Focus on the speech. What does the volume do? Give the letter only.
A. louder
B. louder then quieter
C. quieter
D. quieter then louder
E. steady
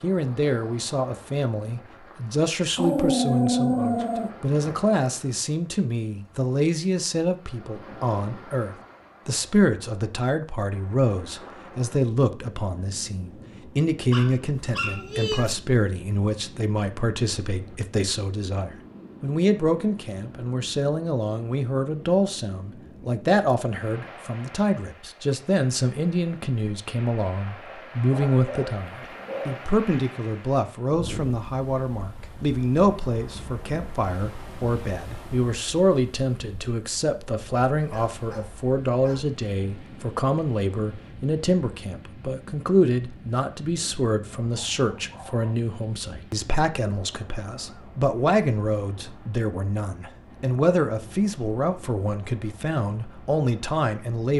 E.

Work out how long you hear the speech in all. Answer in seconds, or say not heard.
54 s.